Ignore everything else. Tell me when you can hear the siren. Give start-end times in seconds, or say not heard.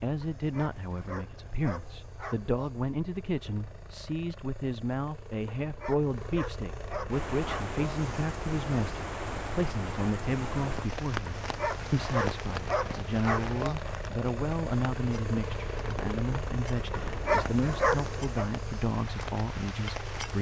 not heard.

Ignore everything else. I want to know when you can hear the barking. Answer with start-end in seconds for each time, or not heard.
0.2-2.7, 5.5-7.8, 11.2-13.8, 16.9-18.5.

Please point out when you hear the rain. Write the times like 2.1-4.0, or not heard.
7.0-20.3.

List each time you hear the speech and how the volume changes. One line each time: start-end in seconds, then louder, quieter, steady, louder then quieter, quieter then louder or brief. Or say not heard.
0.0-20.3 steady.